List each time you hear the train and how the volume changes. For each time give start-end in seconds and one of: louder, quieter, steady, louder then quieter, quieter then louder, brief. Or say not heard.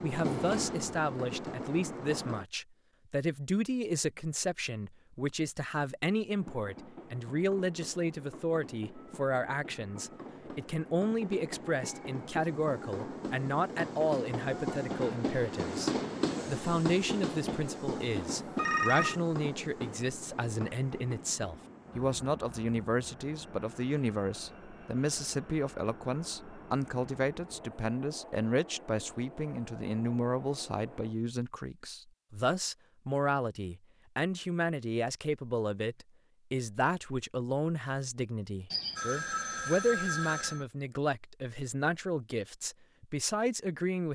0.0-2.5 brief
6.3-31.1 louder then quieter.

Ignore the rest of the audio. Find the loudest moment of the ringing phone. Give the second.
19 s.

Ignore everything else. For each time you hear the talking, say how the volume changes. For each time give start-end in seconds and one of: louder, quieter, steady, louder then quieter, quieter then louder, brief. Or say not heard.
0.0-44.0 steady.